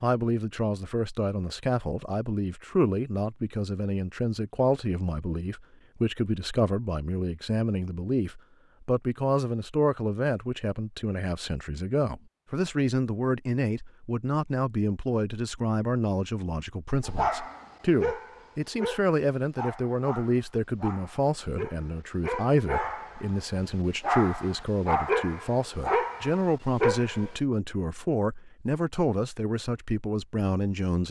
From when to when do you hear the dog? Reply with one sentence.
You can hear the dog from 17.1 to 27.3 s.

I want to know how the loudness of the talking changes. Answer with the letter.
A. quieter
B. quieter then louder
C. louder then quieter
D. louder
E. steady
E.